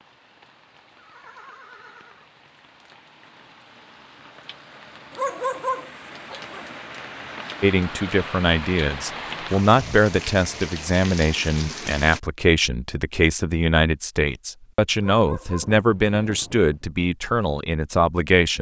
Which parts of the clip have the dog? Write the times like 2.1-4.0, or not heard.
5.1-6.8, 15.1-16.6.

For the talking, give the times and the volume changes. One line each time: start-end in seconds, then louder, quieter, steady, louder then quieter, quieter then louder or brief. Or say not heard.
7.6-18.5 steady.